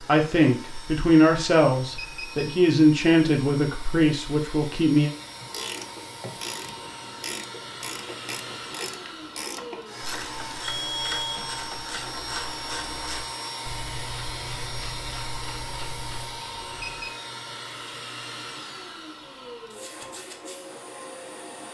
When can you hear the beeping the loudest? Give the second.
11 s.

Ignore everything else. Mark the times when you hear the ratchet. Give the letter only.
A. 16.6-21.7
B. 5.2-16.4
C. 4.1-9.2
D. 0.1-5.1
B.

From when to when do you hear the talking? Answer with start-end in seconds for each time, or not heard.
0.1-5.1.